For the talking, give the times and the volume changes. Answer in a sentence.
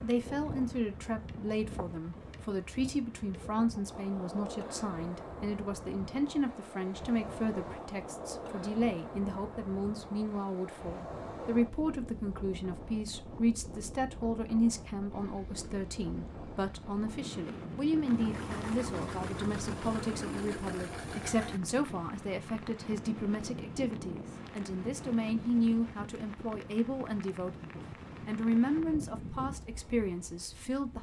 The talking can be heard from 0.0 to 27.5 s, at a steady volume; and briefly from 28.2 to 30.9 s.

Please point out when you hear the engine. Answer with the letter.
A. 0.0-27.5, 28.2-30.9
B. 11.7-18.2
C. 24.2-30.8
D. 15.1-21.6
D.